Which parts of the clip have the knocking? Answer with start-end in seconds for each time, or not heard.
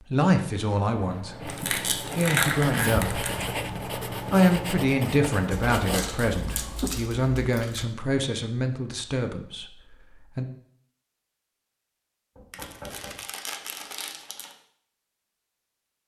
12.3-13.2.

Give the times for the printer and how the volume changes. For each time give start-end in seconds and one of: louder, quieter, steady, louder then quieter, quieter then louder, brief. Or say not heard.
not heard.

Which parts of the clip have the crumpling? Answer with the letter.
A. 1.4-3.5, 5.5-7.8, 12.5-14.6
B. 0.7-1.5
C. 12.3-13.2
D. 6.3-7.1
A.